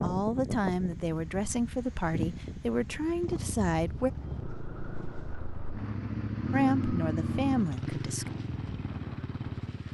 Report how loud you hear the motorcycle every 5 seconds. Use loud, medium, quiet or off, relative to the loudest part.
medium, loud.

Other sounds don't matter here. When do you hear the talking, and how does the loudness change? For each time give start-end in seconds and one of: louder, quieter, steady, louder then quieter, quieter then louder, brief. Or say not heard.
0.0-4.1 steady
6.5-8.3 brief.